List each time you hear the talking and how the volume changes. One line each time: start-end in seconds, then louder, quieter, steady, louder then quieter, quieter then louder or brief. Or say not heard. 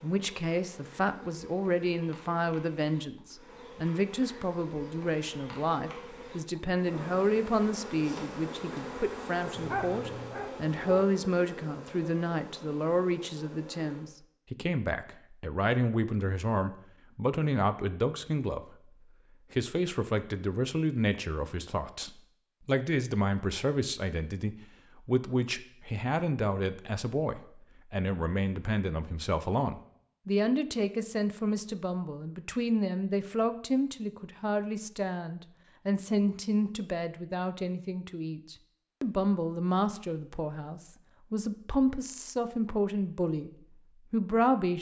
0.0-18.9 steady
19.5-43.5 steady
44.1-44.7 brief.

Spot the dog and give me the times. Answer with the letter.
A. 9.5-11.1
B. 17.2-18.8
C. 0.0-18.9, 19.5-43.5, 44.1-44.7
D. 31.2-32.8
A.